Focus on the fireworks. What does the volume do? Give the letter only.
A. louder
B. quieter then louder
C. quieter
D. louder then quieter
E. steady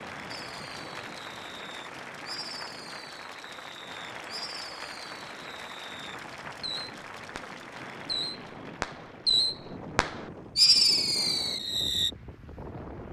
A.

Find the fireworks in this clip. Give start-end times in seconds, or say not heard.
0.3-12.1.